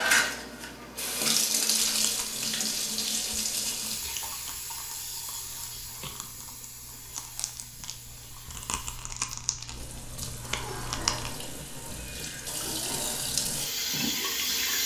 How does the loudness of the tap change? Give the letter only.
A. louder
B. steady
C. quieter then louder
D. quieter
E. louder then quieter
C.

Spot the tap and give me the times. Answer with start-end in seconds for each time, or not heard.
0.0-14.8.